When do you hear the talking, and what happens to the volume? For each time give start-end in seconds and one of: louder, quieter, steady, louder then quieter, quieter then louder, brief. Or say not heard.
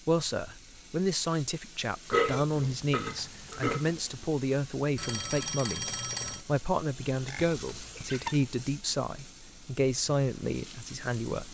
0.1-11.4 steady.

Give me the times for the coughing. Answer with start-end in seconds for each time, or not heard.
not heard.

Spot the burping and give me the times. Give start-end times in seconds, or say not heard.
2.1-4.0, 7.2-8.4.